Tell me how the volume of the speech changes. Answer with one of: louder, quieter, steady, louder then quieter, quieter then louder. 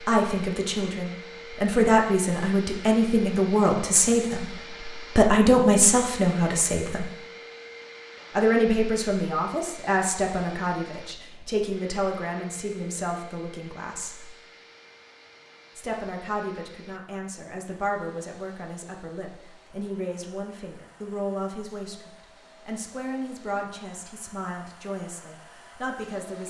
quieter.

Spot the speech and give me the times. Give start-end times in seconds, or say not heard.
0.0-7.1, 8.3-14.3, 15.8-26.4.